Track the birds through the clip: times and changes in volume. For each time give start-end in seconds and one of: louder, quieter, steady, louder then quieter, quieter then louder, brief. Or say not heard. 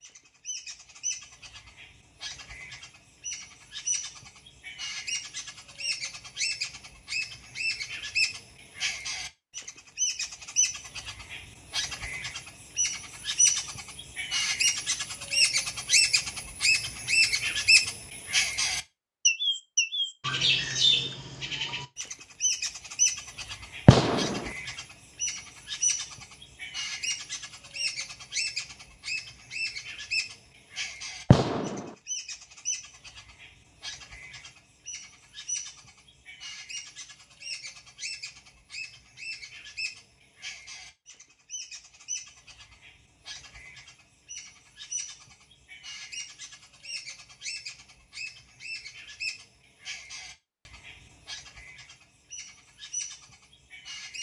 0.0-54.1 louder then quieter.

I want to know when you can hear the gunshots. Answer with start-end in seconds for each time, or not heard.
23.9-24.4, 31.3-31.9.